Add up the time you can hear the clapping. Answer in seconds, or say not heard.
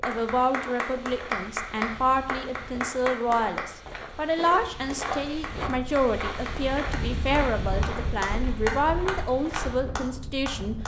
9 s.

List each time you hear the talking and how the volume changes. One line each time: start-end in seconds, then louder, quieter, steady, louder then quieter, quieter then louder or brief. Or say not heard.
0.1-10.8 steady.